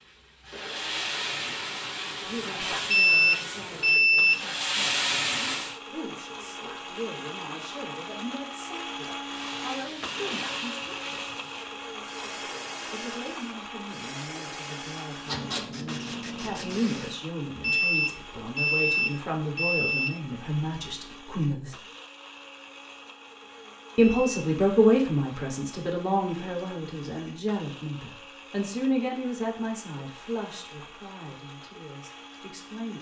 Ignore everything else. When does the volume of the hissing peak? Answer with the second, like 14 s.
5 s.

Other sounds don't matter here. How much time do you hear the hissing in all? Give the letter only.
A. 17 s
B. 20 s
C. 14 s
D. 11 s
C.